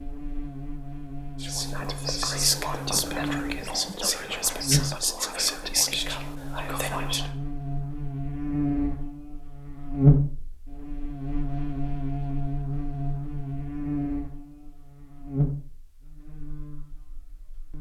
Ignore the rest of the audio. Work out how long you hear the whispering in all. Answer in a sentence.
The whispering can be heard for 6 seconds in total.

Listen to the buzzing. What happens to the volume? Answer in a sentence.
The loudness of the buzzing goes up, then down.